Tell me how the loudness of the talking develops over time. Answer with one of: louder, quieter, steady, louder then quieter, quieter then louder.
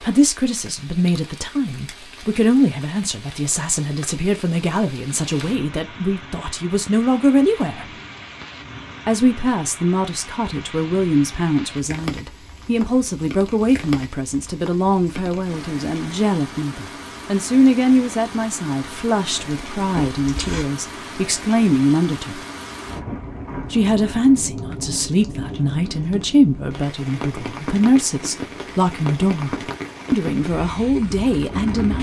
steady.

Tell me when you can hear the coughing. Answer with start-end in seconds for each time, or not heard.
19.9-20.6.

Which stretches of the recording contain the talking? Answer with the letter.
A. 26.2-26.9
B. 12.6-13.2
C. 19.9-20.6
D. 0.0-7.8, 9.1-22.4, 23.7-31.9
D.